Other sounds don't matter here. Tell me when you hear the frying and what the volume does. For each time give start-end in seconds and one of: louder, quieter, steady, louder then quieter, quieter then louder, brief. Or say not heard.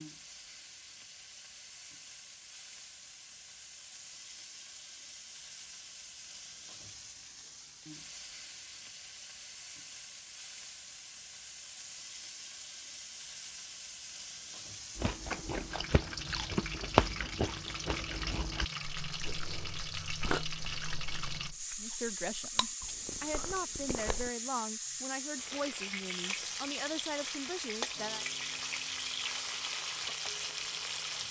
0.0-31.2 louder.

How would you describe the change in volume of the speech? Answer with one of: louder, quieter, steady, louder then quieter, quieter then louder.
steady.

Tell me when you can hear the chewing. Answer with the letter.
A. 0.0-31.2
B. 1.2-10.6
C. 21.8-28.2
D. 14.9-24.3
D.